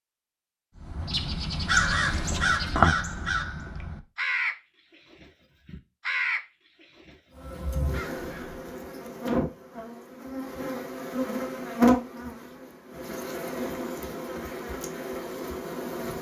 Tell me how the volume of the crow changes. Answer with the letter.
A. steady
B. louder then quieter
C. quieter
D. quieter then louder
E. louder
C.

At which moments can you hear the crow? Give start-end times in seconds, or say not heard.
0.8-8.6.